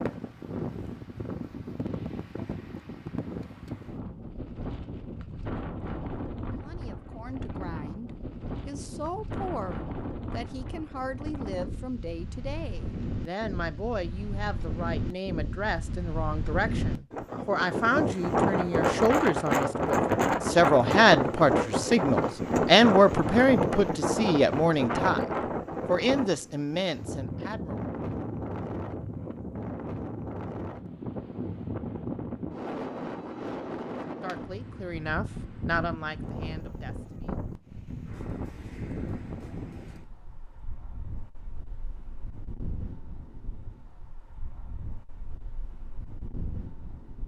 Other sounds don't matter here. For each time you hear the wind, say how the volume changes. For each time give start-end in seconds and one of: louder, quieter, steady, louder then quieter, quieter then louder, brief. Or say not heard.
0.0-47.2 louder then quieter.